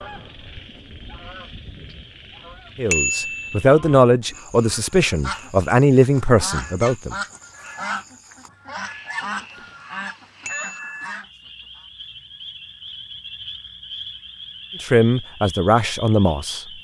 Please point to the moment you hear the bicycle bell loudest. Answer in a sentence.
The volume of the bicycle bell peaks at 3 seconds.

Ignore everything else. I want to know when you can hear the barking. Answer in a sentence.
The barking can't be heard in this clip.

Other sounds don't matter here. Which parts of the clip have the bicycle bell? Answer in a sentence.
You can hear the bicycle bell from 2.9 to 3.6 s and from 10.4 to 11.1 s.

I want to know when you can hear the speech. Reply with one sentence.
You can hear the speech from 2.8 to 7.2 s and from 14.8 to 16.6 s.